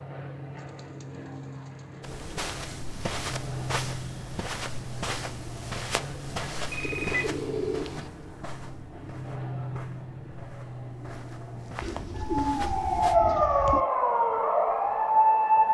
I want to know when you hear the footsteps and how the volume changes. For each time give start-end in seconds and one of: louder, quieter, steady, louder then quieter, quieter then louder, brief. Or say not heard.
2.0-13.2 quieter then louder.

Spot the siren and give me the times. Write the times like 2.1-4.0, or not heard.
12.2-15.7.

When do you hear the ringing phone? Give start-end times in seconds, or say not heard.
6.7-7.3.